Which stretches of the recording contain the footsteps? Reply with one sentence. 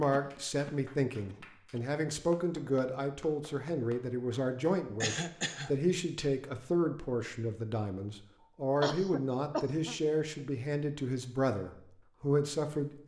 The footsteps can't be heard in this clip.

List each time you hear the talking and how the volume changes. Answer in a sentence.
You can hear the talking from 0.0 to 13.0 s, at a steady volume.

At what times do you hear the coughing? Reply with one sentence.
The coughing can be heard from 0.1 to 1.8 s, from 5.0 to 5.8 s and from 8.8 to 9.9 s.